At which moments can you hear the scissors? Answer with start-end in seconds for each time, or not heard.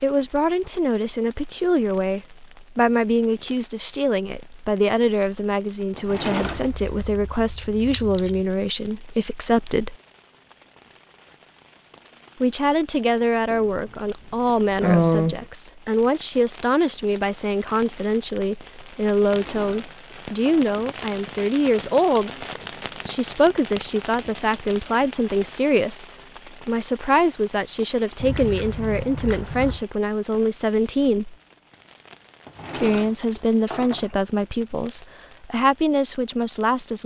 6.7-8.4, 13.5-15.4, 28.2-29.8.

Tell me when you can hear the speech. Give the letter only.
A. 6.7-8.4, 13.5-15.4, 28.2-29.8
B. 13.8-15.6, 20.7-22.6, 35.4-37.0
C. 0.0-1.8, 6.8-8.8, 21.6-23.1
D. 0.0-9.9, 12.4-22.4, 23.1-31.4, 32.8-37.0
D.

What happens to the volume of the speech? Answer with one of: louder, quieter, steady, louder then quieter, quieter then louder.
steady.